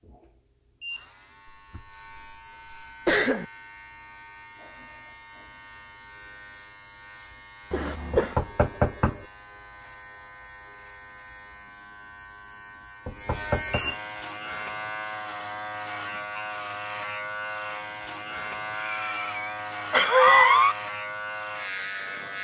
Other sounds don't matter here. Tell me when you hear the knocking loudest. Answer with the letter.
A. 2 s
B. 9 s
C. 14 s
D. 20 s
B.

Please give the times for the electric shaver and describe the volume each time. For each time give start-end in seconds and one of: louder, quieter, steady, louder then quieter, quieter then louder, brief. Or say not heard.
0.0-22.3 louder.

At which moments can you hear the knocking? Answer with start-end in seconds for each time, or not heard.
8.1-9.2, 13.1-13.8.